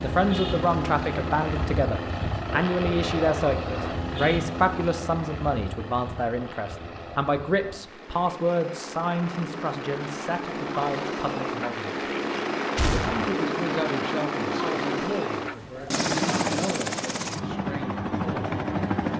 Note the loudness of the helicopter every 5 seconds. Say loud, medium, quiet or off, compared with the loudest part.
loud, medium, loud, loud.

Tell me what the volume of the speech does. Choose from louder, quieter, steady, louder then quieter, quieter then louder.
quieter.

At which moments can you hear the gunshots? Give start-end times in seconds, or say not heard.
12.8-13.3.